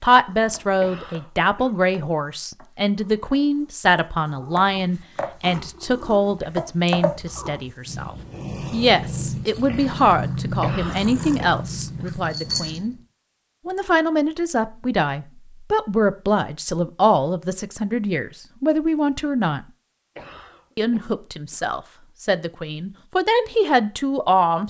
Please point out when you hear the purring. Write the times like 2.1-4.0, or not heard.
0.2-12.9.